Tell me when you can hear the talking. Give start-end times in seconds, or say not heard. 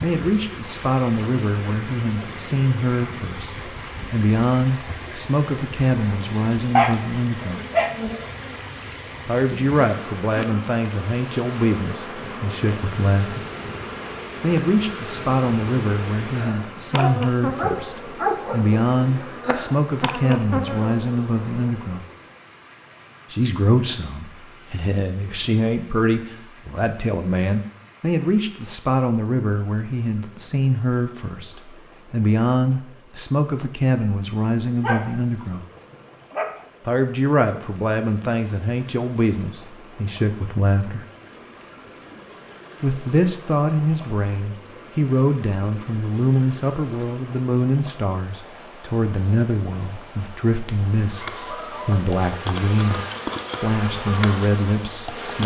0.0-7.6, 9.2-13.4, 14.4-22.1, 23.3-35.6, 36.9-41.0, 42.8-55.4.